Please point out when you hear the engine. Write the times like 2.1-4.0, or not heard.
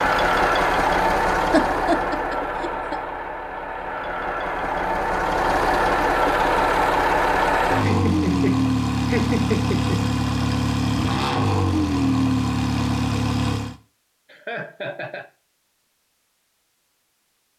0.0-13.8.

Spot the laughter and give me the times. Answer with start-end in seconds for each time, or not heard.
1.5-3.0, 7.8-10.1, 14.3-15.3.